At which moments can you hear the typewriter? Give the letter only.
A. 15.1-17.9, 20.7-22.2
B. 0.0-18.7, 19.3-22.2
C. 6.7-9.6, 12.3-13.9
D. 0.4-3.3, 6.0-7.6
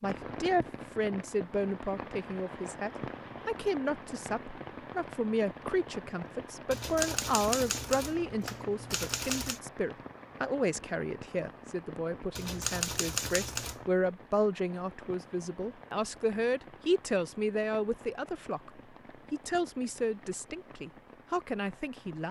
C.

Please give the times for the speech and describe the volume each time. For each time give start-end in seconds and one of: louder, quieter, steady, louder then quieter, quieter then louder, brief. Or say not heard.
0.0-18.7 steady
19.3-22.2 brief.